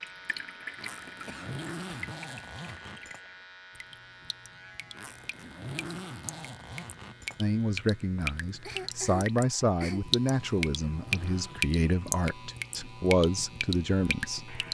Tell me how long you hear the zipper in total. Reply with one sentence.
You can hear the zipper for 6 seconds altogether.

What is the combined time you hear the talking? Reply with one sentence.
The talking can be heard for 7 seconds in total.